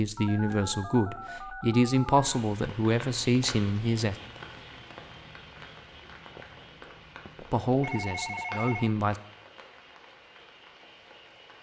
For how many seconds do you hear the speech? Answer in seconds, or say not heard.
6 s.